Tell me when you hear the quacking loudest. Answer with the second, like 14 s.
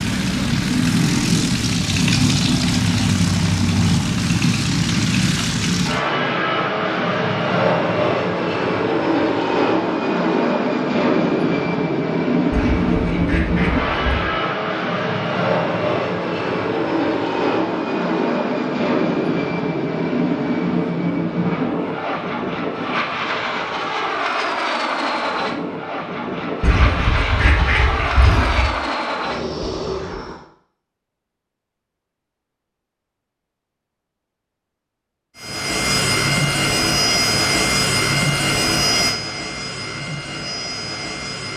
28 s.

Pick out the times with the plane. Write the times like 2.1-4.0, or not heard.
0.0-30.4, 35.4-41.5.